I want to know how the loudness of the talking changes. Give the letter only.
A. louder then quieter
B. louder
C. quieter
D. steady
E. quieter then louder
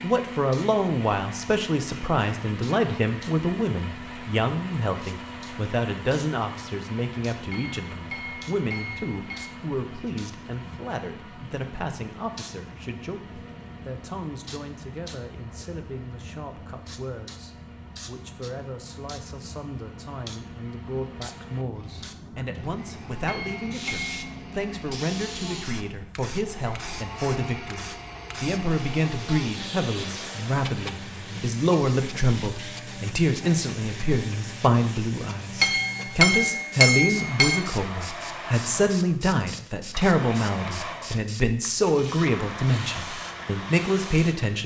E.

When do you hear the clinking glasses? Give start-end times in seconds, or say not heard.
7.5-9.5, 23.2-24.1, 35.6-37.6.